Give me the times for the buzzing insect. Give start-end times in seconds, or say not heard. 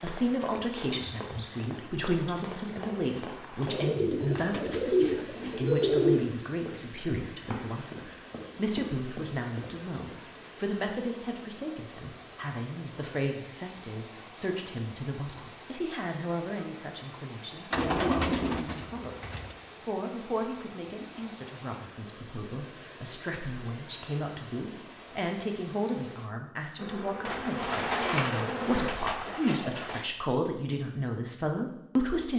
26.8-28.9.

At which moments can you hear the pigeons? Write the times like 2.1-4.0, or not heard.
3.6-6.3, 17.7-19.6, 27.2-30.1.